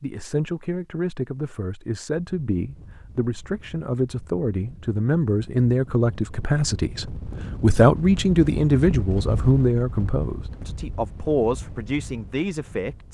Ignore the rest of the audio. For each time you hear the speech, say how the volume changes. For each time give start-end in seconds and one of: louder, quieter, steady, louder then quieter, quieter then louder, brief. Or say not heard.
0.0-13.0 louder then quieter.